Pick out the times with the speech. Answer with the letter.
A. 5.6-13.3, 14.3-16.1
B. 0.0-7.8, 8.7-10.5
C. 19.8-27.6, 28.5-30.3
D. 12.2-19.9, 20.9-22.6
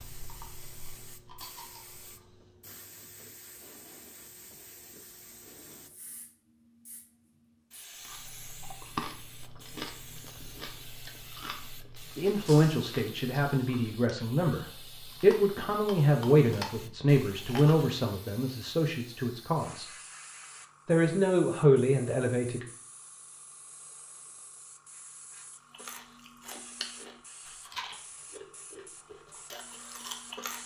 D.